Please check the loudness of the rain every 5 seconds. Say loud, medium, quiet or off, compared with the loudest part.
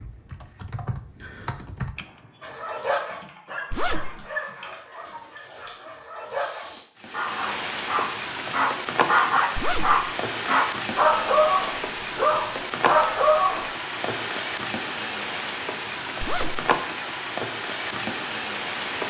off, loud, loud, loud.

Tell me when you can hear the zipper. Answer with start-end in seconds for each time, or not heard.
3.7-4.2, 9.6-10.0, 16.2-16.6.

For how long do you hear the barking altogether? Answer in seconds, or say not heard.
11 s.